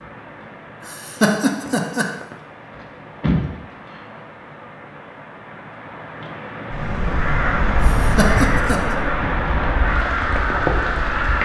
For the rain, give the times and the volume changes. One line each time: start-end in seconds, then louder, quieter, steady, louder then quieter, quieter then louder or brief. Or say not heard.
0.0-11.4 louder.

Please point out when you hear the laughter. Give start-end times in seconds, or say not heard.
0.8-2.1, 7.8-8.9.